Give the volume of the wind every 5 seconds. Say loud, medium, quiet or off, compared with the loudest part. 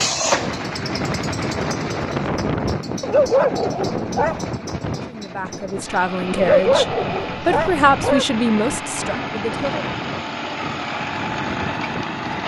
loud, medium, medium.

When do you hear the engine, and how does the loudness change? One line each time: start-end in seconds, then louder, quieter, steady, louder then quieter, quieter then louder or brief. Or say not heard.
0.0-12.4 quieter then louder.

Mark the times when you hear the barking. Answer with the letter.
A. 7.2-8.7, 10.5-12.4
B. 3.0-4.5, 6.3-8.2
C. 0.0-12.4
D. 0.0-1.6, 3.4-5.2
B.